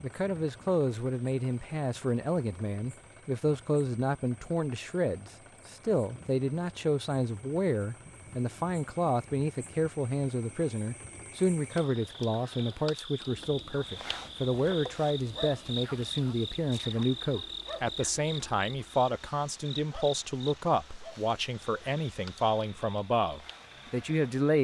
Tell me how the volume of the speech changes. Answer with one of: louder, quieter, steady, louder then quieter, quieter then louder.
steady.